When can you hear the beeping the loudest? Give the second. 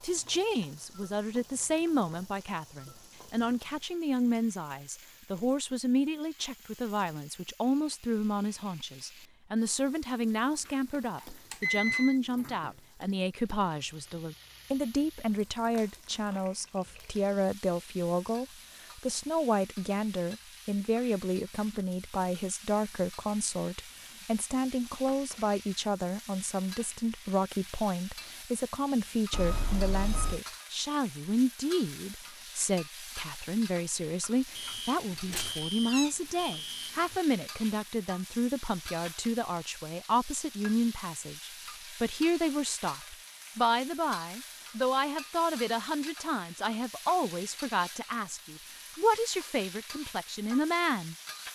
12 s.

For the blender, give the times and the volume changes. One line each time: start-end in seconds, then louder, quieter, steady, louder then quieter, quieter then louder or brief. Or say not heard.
not heard.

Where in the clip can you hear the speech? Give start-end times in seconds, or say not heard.
0.0-51.1.